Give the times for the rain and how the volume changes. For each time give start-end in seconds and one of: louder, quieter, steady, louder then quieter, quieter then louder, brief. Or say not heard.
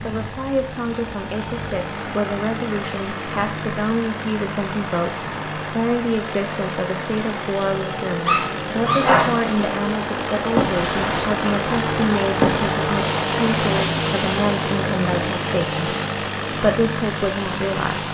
0.0-18.0 louder then quieter.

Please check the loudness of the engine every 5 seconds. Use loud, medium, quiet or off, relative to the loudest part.
medium, medium, loud, loud.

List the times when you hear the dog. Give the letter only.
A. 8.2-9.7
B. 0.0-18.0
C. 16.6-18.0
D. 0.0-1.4
A.